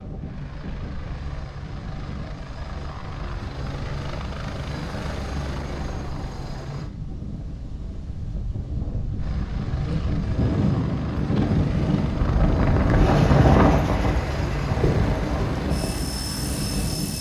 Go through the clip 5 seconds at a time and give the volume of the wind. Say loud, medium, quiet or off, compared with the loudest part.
quiet, quiet, loud, medium.